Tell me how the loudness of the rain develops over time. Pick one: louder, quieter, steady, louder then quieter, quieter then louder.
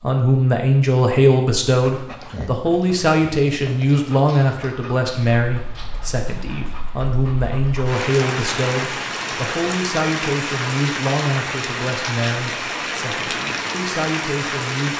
louder.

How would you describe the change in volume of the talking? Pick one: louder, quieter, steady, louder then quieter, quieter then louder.
quieter.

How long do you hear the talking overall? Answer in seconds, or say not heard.
15 s.